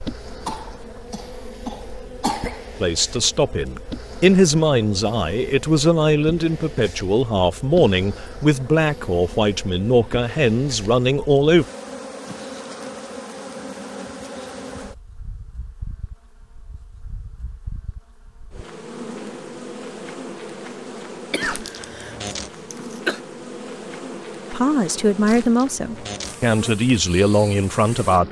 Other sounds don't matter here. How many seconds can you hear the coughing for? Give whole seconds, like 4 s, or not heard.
4 s.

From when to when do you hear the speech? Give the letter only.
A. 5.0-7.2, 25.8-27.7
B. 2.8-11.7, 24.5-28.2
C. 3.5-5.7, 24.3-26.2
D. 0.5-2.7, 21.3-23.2
B.